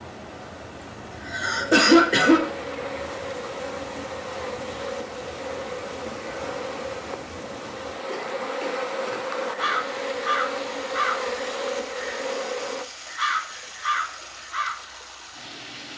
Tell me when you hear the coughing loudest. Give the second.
2 s.